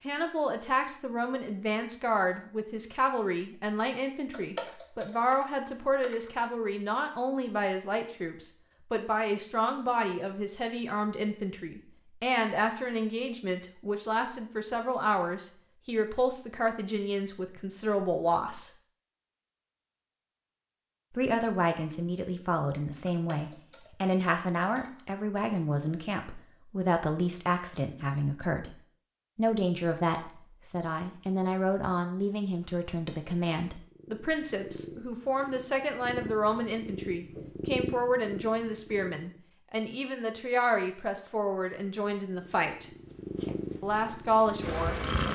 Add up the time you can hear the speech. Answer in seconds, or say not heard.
41 s.